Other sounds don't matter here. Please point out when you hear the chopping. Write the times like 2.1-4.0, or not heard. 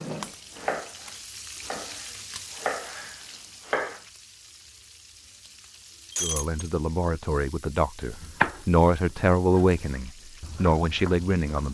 0.0-4.0, 8.2-11.6.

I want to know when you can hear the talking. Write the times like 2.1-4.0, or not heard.
6.2-11.6.